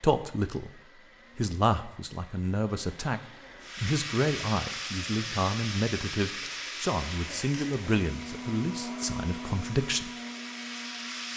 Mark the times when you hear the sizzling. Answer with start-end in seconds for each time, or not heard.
3.6-11.3.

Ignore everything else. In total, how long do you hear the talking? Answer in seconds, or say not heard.
9 s.